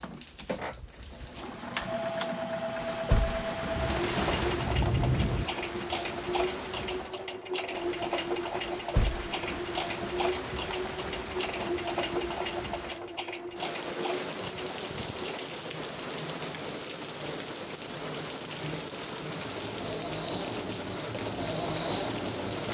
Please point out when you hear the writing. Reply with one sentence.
You can hear the writing from 3.7 to 5.5 s.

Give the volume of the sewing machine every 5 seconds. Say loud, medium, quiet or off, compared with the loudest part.
loud, loud, loud, medium, loud.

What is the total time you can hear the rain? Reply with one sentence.
You can hear the rain for 23 seconds altogether.